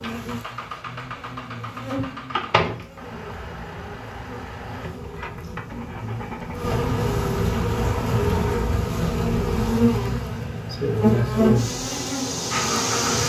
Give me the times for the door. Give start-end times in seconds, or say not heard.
1.9-3.0.